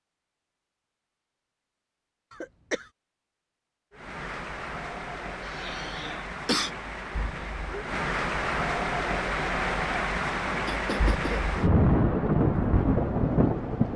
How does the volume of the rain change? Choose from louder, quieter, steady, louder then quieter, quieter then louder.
louder.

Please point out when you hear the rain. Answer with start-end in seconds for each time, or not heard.
3.9-13.9.